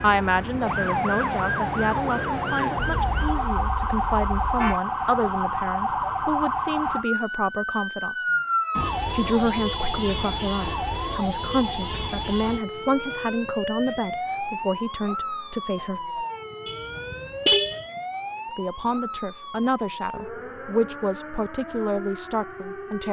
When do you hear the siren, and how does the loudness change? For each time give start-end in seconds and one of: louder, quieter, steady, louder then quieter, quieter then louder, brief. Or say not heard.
0.0-23.0 quieter.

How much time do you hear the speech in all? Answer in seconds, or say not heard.
20 s.